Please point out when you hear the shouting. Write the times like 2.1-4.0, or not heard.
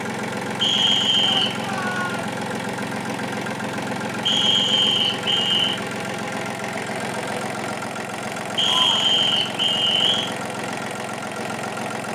1.2-2.4, 8.6-9.2.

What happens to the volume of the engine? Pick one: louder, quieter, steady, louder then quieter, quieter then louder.
steady.